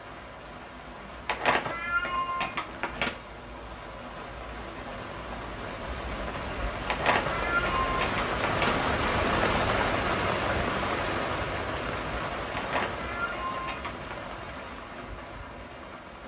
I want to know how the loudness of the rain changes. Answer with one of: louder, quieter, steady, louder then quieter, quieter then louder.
louder then quieter.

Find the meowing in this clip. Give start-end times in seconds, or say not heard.
1.2-3.1, 6.8-8.8, 12.6-14.2.